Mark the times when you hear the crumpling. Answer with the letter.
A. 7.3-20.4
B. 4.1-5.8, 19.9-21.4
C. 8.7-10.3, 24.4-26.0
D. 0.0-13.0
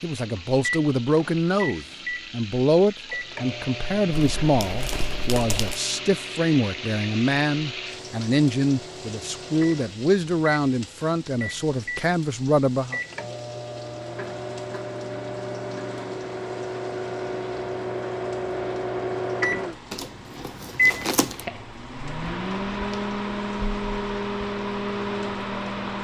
B.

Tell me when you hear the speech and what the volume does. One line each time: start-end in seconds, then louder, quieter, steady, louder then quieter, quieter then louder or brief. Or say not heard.
0.0-13.0 steady.